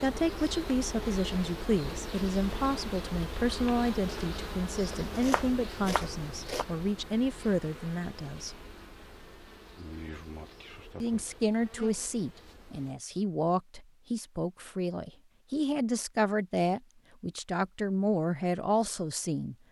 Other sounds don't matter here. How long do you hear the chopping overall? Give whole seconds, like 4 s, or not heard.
2 s.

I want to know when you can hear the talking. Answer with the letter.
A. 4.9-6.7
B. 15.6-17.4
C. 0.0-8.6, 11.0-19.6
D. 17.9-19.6
C.